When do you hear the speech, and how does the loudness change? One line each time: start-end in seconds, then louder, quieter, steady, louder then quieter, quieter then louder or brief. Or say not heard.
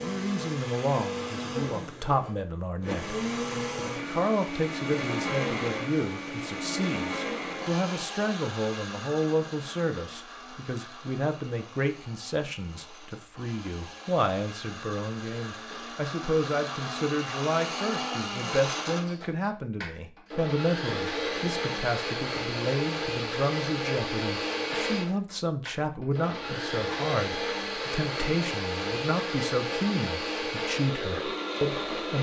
0.0-32.1 steady.